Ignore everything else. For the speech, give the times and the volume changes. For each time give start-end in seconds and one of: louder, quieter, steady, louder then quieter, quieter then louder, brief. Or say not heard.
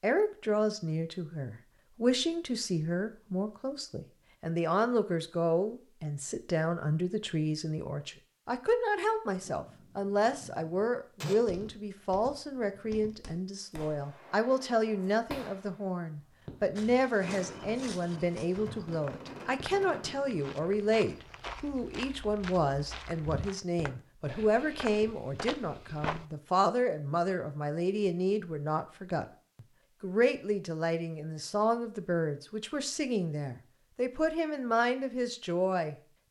0.0-36.0 steady.